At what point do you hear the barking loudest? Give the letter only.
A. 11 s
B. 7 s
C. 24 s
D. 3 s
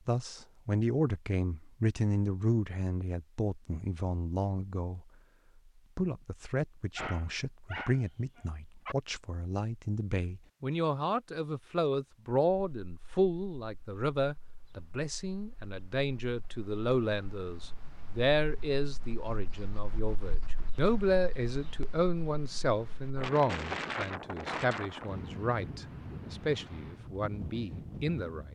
B.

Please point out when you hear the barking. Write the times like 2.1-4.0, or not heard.
7.0-8.9.